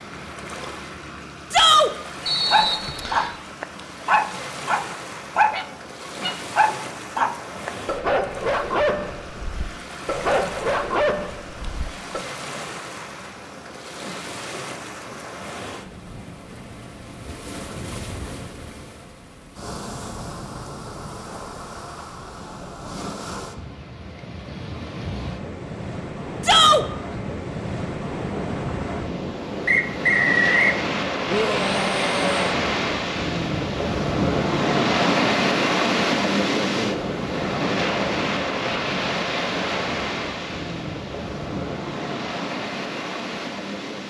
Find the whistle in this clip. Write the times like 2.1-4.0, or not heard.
2.2-3.4, 29.6-30.8.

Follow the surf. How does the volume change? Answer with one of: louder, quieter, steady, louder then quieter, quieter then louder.
louder.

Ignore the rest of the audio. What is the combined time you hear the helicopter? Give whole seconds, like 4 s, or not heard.
not heard.